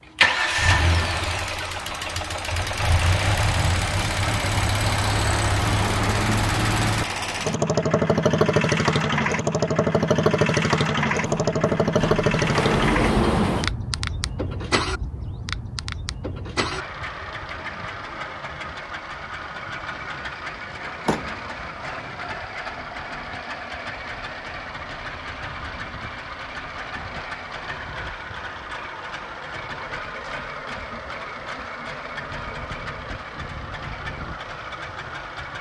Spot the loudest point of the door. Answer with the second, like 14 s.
13 s.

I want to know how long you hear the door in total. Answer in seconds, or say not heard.
3 s.